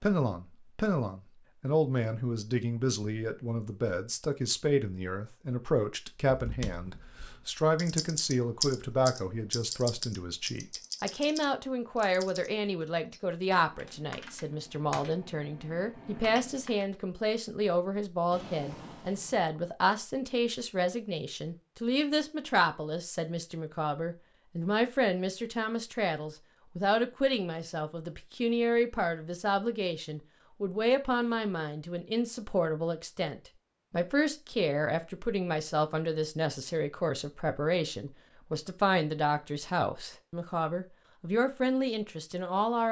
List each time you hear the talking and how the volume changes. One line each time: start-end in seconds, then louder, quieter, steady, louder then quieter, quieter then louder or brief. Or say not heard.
0.0-42.8 steady.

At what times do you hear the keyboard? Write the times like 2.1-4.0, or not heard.
6.3-16.9.